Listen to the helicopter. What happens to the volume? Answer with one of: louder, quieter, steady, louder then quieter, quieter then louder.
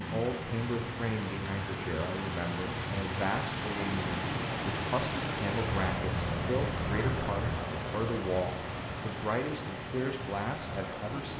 quieter.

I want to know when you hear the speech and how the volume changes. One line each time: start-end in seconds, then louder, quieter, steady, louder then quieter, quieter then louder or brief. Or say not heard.
0.0-11.3 steady.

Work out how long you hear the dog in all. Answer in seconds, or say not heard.
2 s.